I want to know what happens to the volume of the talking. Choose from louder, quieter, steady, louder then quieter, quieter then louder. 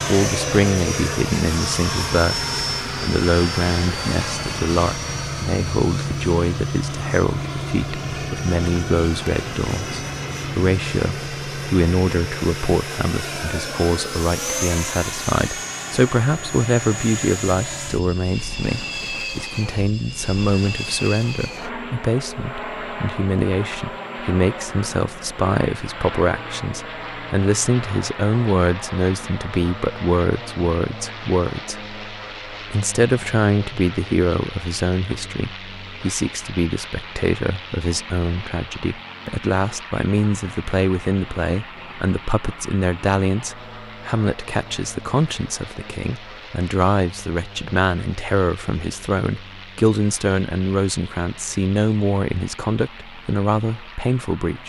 steady.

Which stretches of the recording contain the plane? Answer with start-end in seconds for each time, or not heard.
0.0-54.6.